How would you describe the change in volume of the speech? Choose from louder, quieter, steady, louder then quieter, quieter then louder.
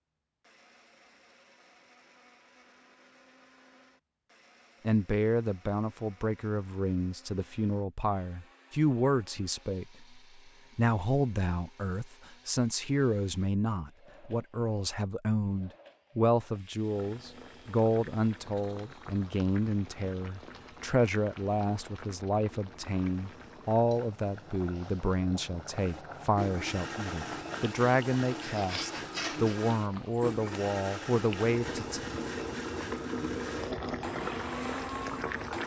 steady.